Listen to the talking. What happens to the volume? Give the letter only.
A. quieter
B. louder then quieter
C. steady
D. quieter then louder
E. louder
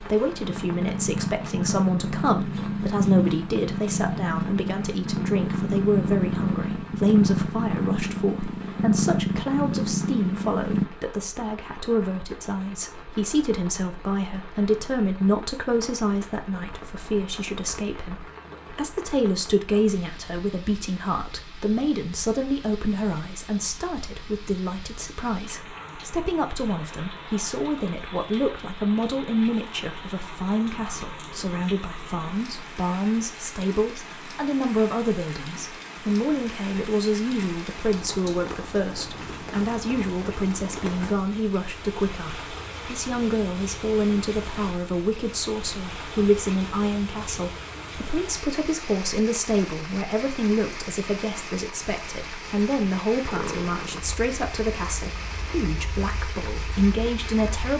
C.